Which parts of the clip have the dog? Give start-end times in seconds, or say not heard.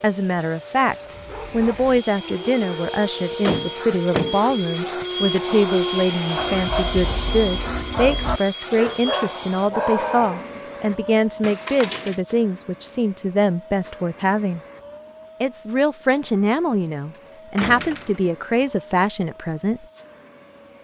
1.0-10.5.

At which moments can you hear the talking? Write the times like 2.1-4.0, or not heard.
0.0-14.6, 15.4-19.9.